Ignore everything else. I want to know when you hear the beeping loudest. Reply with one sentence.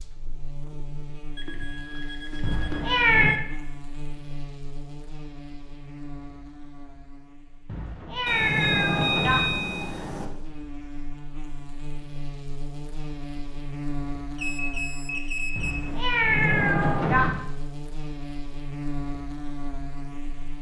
The loudest moment of the beeping is at 9 seconds.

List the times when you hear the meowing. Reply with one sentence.
You can hear the meowing from 2.4 to 3.4 s, from 7.7 to 9.4 s and from 15.6 to 17.4 s.